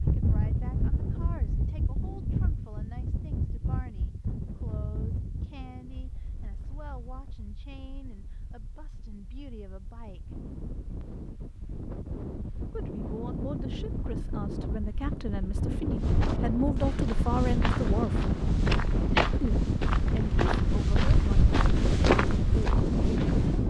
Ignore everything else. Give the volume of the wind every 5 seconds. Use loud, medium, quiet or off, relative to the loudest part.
medium, quiet, medium, loud, loud.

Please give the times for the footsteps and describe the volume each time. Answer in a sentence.
You can hear the footsteps from 15.9 to 23.6 s, getting louder.